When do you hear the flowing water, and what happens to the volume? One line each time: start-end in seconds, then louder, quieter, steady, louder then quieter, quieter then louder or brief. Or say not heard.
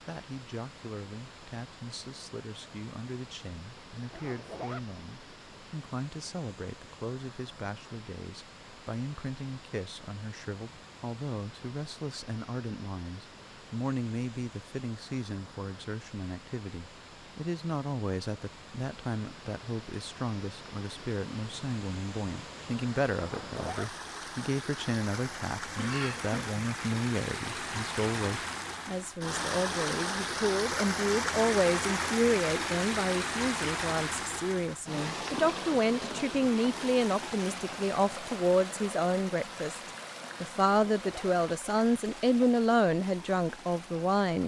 0.0-44.4 louder then quieter.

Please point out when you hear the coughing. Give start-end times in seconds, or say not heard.
25.8-26.6.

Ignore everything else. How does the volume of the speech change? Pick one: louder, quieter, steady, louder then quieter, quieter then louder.
louder.